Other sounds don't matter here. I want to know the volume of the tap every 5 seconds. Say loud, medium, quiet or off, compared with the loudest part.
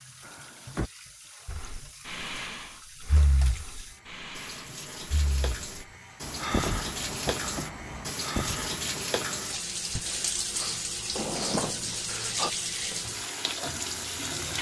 quiet, loud, loud.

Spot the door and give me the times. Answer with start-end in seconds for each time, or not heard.
0.2-0.9, 6.2-8.1, 11.2-12.1.